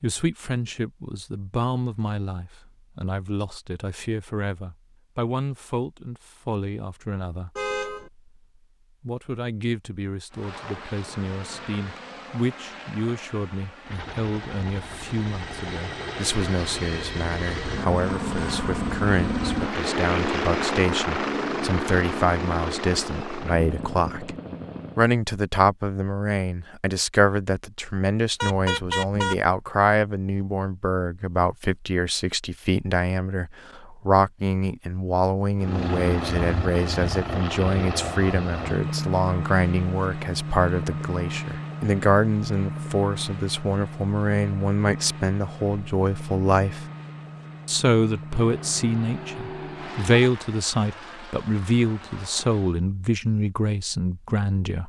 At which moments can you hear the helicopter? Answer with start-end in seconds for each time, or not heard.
10.3-25.1, 35.5-52.8.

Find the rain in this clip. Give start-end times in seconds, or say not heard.
not heard.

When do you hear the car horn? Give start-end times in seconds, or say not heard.
7.5-8.1, 28.4-29.4, 48.3-50.3.